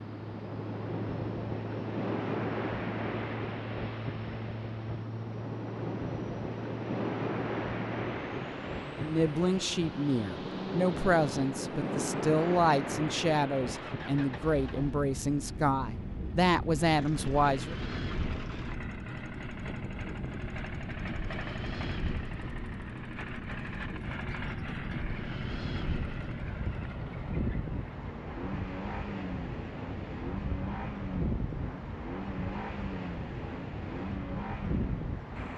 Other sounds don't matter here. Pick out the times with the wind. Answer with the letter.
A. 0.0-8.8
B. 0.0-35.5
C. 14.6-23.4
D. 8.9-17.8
B.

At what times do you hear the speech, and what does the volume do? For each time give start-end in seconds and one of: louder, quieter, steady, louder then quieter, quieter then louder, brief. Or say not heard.
8.9-17.8 steady.